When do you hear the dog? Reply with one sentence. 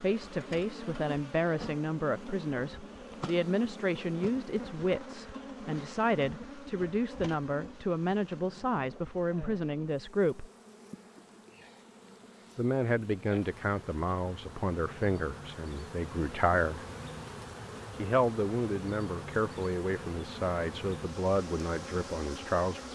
You can't hear the dog here.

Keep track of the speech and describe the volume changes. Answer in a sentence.
The loudness of the speech stays about the same.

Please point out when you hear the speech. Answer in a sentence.
The speech can be heard from 0.0 to 10.4 s, from 12.6 to 16.9 s and from 18.0 to 22.9 s.